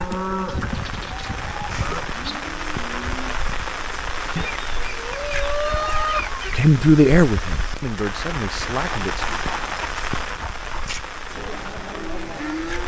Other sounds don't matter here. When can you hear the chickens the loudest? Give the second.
6 s.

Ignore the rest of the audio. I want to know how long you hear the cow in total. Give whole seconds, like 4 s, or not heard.
5 s.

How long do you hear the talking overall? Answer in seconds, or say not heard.
3 s.